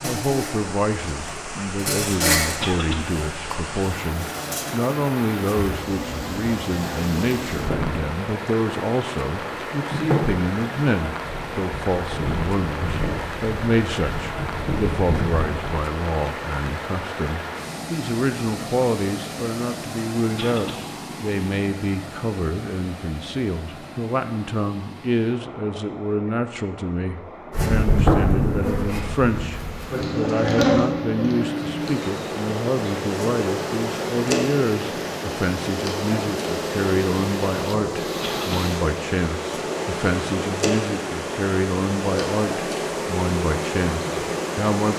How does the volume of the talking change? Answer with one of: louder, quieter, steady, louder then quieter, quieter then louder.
steady.